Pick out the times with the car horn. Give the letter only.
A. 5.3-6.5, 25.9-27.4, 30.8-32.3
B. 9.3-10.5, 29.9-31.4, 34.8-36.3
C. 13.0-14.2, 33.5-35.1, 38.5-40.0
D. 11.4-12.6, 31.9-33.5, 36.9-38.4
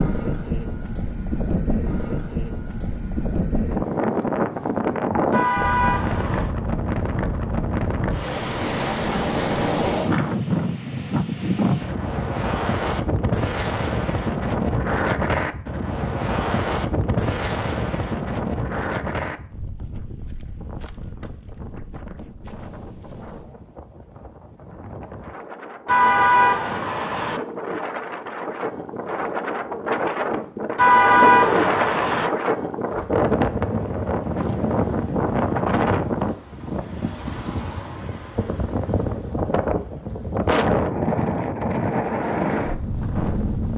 A.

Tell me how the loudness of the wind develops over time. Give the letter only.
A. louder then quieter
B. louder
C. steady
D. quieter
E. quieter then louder
E.